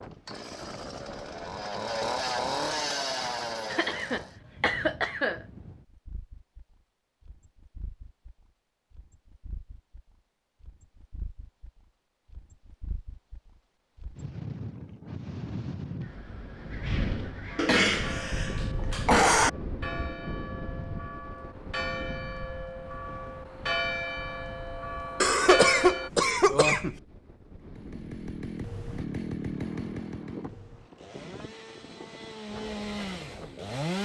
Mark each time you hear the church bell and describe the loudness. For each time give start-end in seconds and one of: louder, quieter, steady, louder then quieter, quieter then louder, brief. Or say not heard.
17.5-26.1 louder.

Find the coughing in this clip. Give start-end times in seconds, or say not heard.
3.7-5.4, 17.6-19.5, 25.2-27.0.